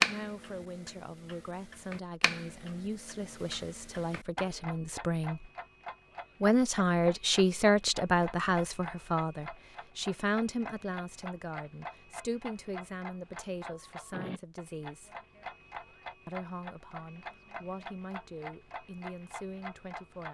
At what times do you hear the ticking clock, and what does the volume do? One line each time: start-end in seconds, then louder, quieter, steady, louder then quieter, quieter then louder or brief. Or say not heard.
0.0-20.2 steady.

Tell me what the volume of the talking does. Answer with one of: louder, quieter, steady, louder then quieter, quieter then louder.
louder then quieter.